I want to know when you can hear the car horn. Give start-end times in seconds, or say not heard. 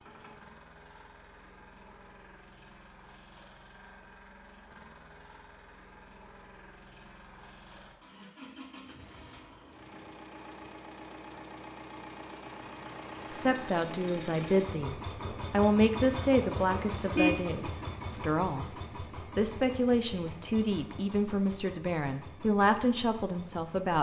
17.1-17.7.